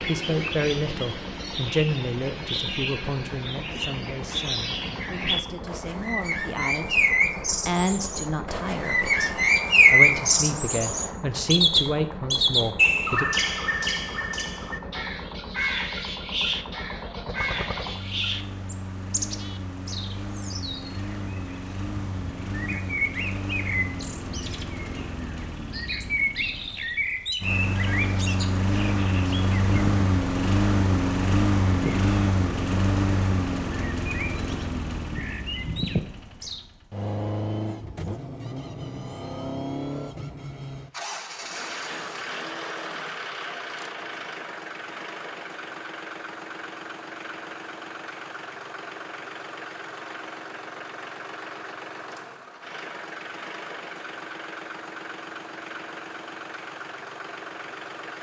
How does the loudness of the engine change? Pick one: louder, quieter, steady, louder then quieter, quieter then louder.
louder then quieter.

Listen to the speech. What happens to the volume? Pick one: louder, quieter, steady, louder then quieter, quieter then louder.
quieter then louder.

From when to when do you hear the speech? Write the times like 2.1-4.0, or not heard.
0.0-13.2.